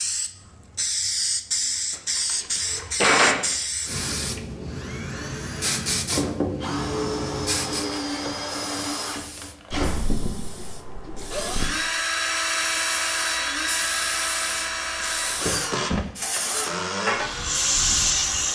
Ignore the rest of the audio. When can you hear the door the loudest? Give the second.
3 s.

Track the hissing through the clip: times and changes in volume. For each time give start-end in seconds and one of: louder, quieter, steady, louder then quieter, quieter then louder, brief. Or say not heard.
0.0-18.5 quieter then louder.